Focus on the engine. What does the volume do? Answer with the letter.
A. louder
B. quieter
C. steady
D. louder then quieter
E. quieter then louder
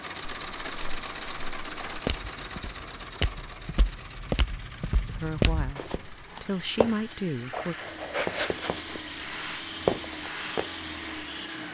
E.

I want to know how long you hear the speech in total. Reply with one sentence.
You can hear the speech for 3 seconds altogether.